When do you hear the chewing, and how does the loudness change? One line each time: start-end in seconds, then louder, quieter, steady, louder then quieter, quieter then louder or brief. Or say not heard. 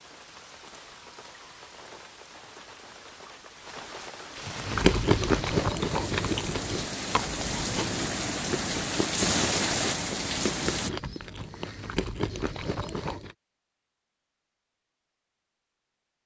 4.5-13.3 quieter.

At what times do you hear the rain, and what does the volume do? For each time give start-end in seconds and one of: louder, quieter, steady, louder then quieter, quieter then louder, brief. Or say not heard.
0.0-10.9 louder.